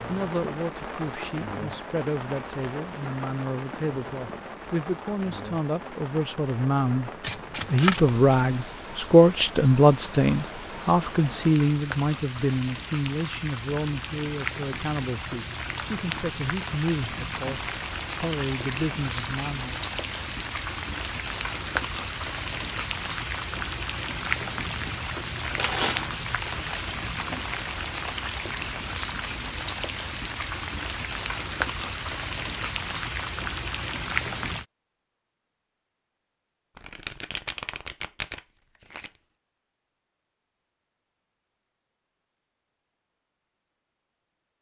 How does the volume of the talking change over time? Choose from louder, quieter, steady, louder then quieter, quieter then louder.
louder then quieter.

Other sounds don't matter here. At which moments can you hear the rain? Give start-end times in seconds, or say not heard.
0.0-34.6.